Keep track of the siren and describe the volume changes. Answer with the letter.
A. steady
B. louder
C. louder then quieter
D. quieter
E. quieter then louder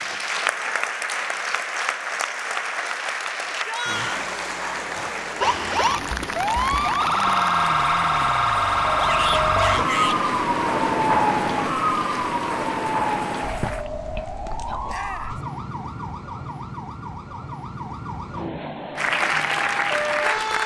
D.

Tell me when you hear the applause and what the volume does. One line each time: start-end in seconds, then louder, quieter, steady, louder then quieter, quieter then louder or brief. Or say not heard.
0.0-13.8 quieter
18.9-20.6 brief.